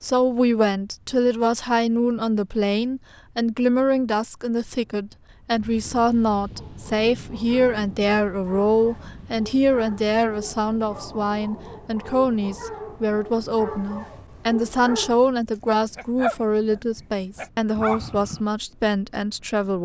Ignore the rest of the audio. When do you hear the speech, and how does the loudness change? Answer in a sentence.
The speech can be heard from 0.0 to 19.8 s, at a steady volume.